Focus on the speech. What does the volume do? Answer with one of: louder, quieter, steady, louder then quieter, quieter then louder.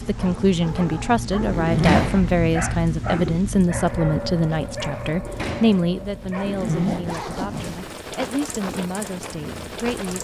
quieter.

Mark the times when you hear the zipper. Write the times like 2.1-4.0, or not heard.
1.5-2.2, 6.4-7.8.